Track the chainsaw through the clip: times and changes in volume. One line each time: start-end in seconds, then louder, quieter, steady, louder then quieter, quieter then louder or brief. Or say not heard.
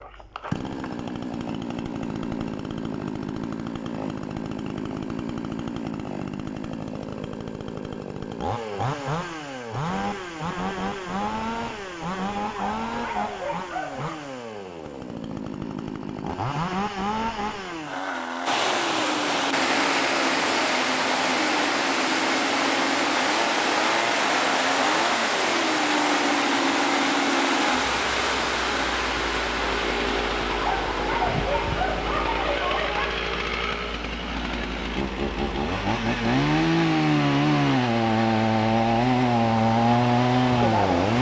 0.0-41.1 louder.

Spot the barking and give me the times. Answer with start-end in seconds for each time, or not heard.
12.4-14.2, 30.5-33.1.